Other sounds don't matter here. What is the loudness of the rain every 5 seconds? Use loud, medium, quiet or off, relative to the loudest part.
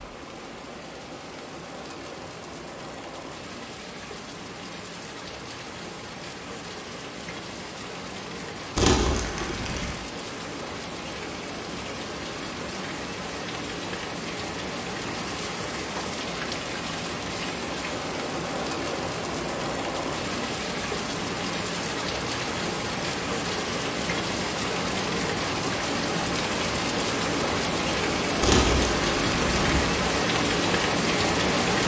quiet, quiet, medium, medium, medium, loud, loud.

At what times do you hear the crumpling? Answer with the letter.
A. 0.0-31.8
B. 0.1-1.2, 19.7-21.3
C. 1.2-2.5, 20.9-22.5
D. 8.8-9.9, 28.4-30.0
D.